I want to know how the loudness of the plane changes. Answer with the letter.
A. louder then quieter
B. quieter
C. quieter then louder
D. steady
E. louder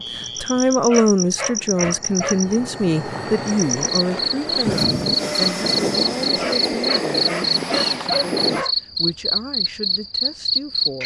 E.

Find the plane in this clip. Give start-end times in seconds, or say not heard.
0.0-8.7.